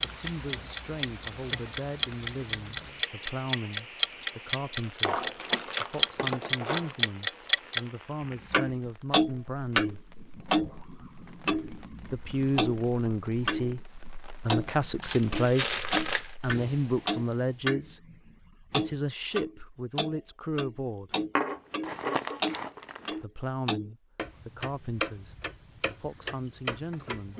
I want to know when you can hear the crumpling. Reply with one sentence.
You can hear the crumpling from 5.0 to 6.9 s, from 15.0 to 16.4 s and from 21.4 to 23.2 s.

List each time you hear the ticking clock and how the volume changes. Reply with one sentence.
You can hear the ticking clock from 0.0 to 7.8 s, getting louder; and from 8.5 to 27.3 s, getting quieter.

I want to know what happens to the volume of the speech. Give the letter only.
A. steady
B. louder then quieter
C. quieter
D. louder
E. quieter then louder
B.